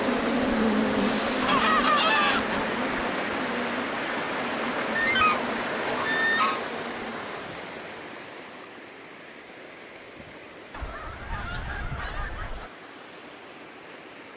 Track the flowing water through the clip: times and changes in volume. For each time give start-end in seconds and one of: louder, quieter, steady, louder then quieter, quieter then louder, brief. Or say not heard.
0.0-14.3 quieter.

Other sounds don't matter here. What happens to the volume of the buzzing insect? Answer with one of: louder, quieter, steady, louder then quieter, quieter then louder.
quieter.